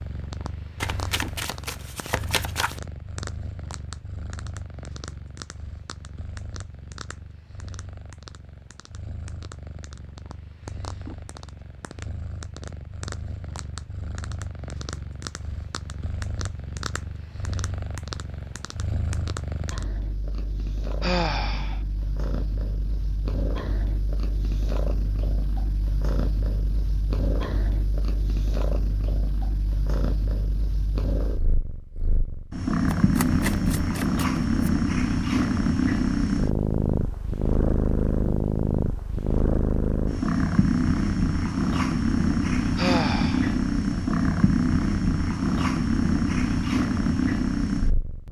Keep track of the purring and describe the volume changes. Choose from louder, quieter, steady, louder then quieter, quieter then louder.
louder.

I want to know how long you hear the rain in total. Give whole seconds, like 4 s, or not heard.
not heard.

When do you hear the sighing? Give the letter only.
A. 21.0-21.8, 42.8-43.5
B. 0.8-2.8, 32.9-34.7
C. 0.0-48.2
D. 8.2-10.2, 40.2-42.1
A.